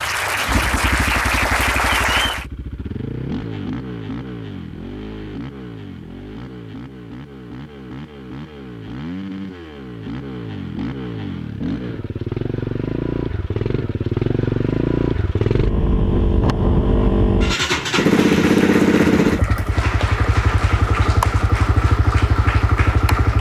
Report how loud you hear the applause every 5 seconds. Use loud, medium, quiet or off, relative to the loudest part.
loud, off, off, medium, medium.